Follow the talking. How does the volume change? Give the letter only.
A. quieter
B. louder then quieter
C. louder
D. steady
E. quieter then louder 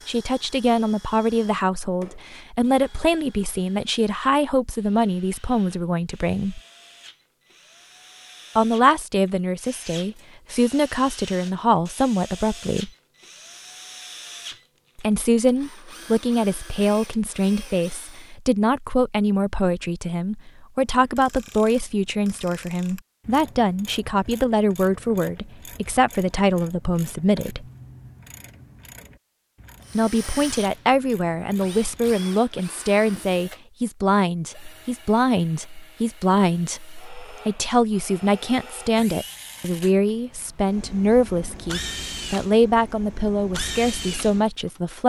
D.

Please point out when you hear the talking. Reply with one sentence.
The talking can be heard from 0.1 to 6.6 s, from 8.6 to 12.9 s, from 14.9 to 27.6 s and from 29.9 to 45.0 s.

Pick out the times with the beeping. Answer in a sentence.
The beeping can't be heard in this clip.